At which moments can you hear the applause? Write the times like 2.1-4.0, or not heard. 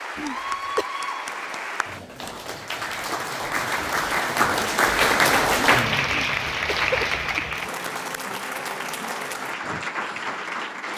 0.0-10.9.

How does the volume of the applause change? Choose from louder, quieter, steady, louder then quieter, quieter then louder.
louder then quieter.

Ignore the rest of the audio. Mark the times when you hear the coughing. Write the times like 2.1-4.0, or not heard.
0.1-0.8, 6.1-7.4.